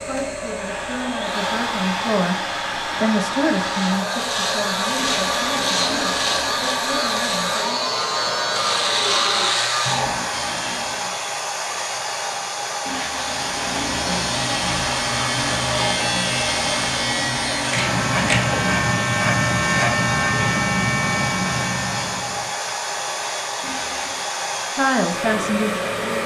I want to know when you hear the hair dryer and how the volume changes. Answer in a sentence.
The hair dryer can be heard from 0.0 to 26.2 s, at a steady volume.